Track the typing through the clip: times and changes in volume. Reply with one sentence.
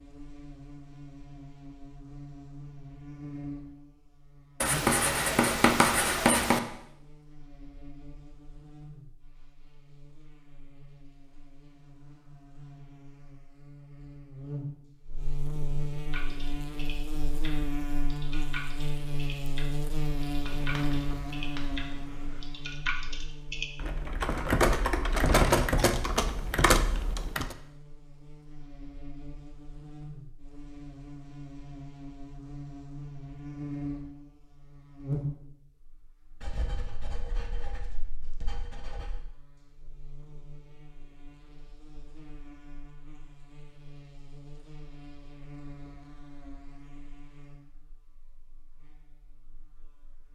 You can hear the typing from 15.9 to 27.6 s, getting louder.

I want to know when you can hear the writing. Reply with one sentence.
You can hear the writing from 4.6 to 6.6 s, from 20.4 to 22.0 s and from 36.4 to 39.2 s.